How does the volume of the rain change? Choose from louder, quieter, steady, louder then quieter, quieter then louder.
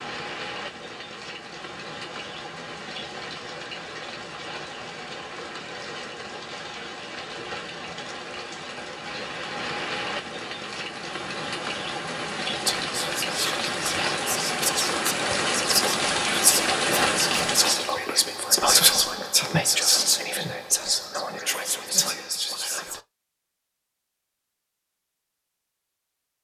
louder.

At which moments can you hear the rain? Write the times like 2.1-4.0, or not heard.
0.0-18.1.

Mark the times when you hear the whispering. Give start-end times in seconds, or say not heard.
12.7-23.0.